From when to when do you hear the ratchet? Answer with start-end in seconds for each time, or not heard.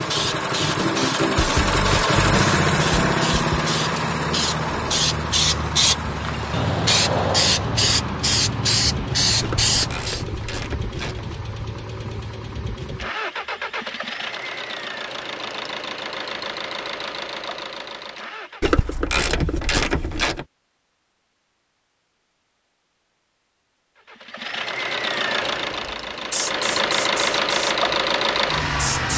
9.4-11.2, 18.6-20.4.